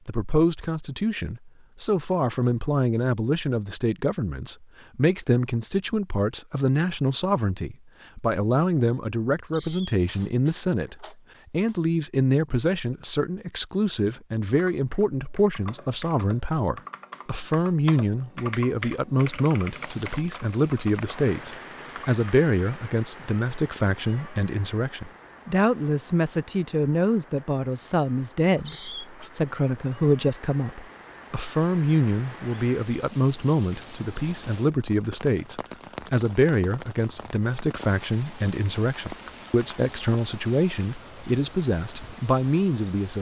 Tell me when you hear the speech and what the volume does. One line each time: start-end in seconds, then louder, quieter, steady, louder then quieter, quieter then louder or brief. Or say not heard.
0.1-43.1 steady.